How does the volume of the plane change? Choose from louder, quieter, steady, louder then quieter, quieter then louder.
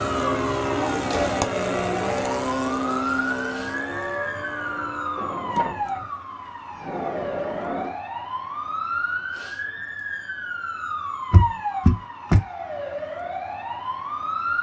quieter.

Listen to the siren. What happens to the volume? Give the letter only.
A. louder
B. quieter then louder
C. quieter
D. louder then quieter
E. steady
E.